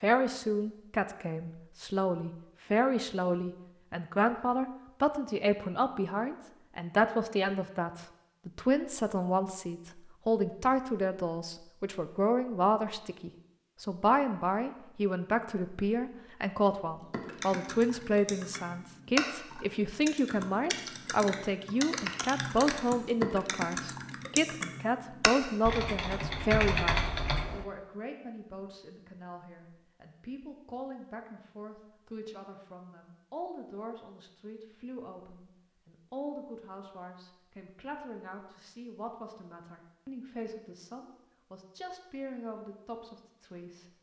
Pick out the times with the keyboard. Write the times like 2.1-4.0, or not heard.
17.1-27.6.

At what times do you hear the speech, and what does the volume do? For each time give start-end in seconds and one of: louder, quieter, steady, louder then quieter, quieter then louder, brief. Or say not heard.
0.0-43.9 quieter.